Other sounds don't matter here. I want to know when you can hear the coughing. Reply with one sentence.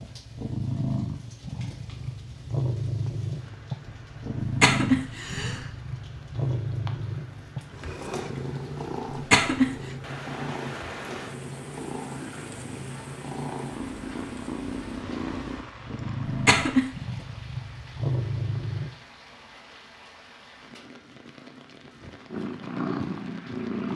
The coughing can be heard from 4.4 to 5.7 s, from 9.1 to 9.8 s and from 16.2 to 16.9 s.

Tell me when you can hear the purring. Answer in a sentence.
You can hear the purring from 0.0 to 18.9 s and from 22.3 to 23.9 s.